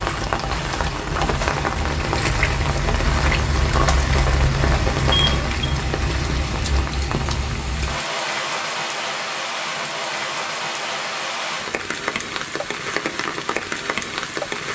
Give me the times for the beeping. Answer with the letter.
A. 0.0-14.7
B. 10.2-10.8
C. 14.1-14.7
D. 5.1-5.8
D.